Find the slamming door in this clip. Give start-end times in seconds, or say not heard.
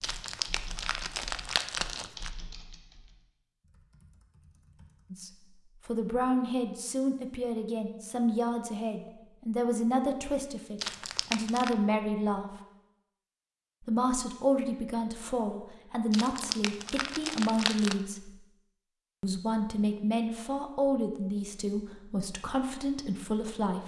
not heard.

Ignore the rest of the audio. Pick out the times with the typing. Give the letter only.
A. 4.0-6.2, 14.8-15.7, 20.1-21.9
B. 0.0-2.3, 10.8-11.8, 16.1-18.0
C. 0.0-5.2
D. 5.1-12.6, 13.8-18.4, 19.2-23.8
C.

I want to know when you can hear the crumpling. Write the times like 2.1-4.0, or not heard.
0.0-2.3, 10.8-11.8, 16.1-18.0.